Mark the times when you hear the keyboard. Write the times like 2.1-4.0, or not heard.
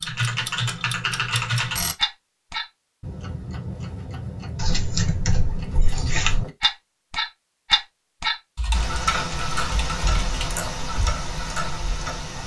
0.1-1.8, 4.5-6.5, 8.6-10.5.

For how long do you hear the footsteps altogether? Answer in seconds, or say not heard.
not heard.